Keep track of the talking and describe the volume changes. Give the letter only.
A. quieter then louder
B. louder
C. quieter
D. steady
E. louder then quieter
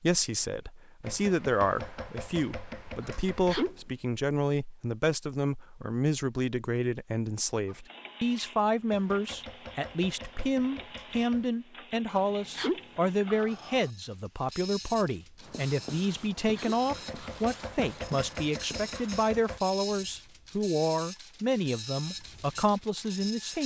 D.